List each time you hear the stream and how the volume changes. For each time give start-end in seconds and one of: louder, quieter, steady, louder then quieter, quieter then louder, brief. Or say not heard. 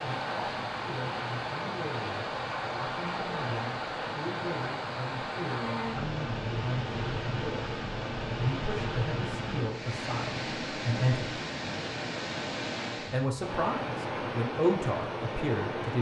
0.0-15.9 steady.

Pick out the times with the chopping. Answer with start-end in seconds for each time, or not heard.
not heard.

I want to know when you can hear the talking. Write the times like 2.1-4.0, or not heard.
0.0-11.4, 13.1-15.9.